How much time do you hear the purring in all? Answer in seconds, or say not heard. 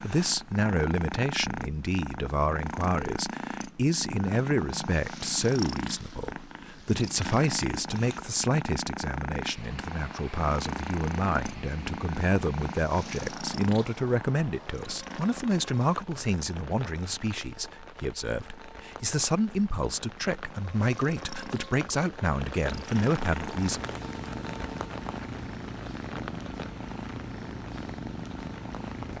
29 s.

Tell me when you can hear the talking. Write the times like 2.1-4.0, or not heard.
0.0-23.9.